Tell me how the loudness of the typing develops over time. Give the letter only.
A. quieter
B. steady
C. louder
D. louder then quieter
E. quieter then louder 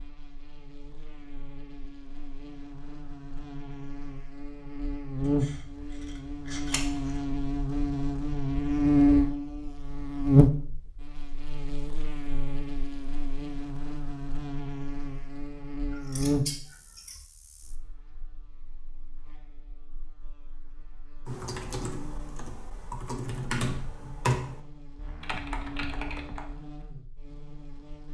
D.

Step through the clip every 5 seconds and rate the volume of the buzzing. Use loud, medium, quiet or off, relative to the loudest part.
quiet, loud, loud, medium, quiet, quiet.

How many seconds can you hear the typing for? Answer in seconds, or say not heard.
5 s.